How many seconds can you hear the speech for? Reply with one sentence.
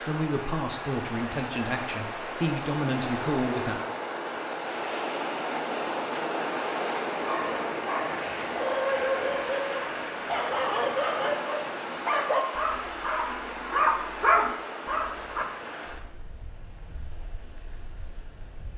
The speech can be heard for 4 seconds in total.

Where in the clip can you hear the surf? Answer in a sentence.
The surf can be heard from 0.0 to 18.7 s.